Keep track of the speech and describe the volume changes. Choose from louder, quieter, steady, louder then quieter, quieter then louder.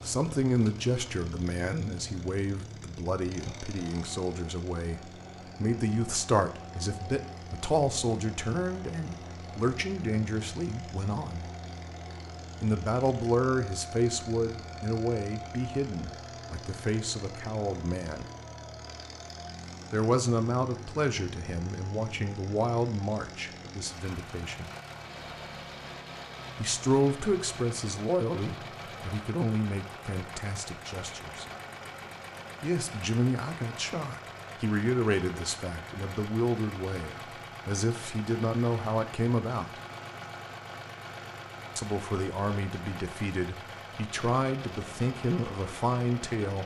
steady.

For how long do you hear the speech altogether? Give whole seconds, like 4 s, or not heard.
39 s.